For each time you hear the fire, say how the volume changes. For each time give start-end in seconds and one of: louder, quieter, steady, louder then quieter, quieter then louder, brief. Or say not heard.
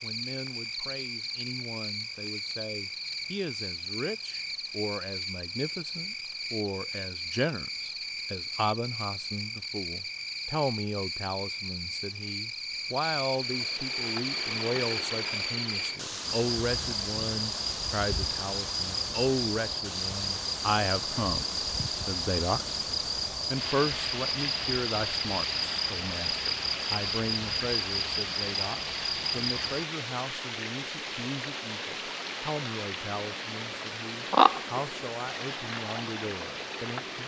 not heard.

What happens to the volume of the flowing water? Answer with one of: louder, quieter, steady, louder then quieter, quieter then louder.
steady.